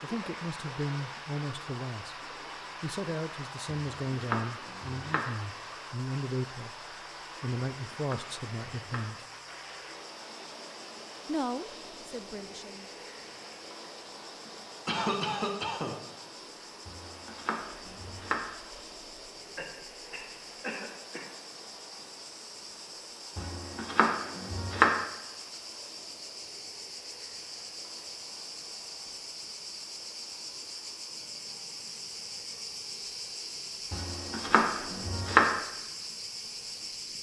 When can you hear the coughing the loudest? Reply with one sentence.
The loudest moment of the coughing is at 15 seconds.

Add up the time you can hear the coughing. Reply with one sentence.
You can hear the coughing for 3 seconds altogether.